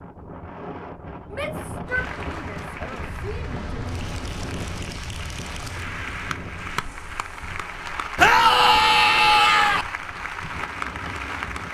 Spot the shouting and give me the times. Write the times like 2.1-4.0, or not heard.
1.3-4.0, 8.2-9.8.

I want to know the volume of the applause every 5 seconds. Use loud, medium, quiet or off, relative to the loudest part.
medium, loud, loud.